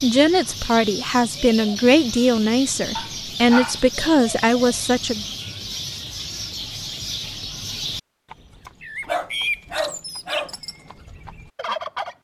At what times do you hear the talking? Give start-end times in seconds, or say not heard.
0.0-5.2.